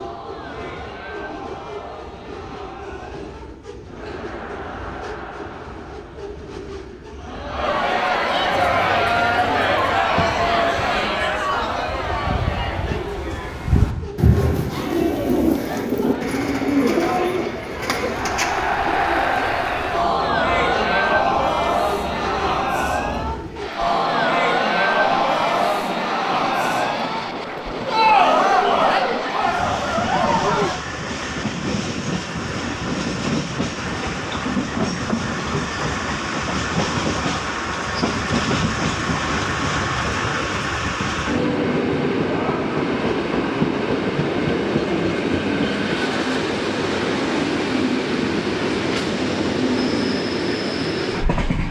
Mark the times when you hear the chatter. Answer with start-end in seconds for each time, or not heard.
0.0-30.8.